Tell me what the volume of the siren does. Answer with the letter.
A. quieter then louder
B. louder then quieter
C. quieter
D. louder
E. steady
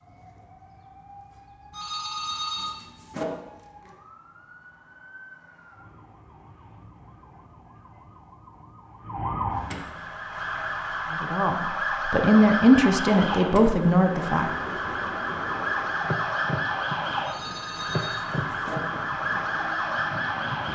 D.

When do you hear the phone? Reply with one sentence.
You can hear the phone from 1.7 to 3.2 s and from 17.2 to 18.8 s.